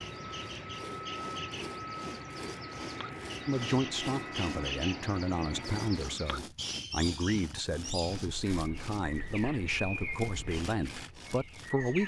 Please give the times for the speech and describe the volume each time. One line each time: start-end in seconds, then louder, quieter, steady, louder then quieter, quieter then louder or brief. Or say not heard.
3.5-12.0 steady.